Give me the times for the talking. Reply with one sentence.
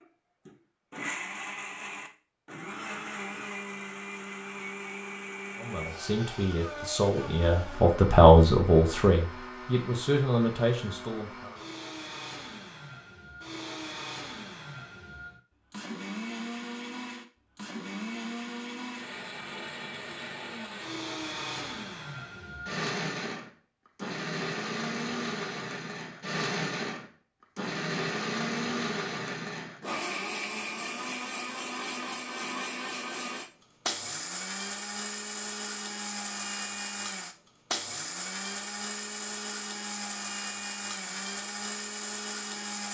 You can hear the talking from 5.5 to 11.5 s.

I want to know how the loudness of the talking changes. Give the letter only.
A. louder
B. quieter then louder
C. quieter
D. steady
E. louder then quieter
E.